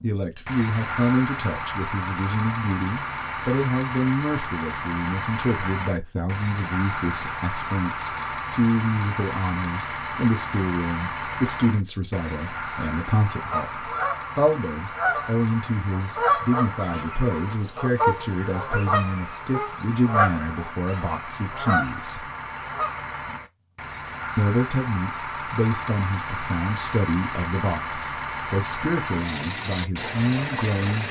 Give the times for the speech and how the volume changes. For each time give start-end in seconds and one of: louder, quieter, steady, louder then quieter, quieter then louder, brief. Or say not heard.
0.0-22.2 steady
24.4-31.0 steady.